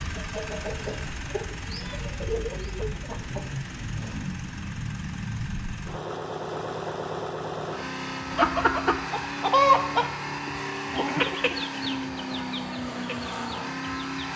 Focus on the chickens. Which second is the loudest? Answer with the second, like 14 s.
10 s.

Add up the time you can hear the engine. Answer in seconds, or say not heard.
14 s.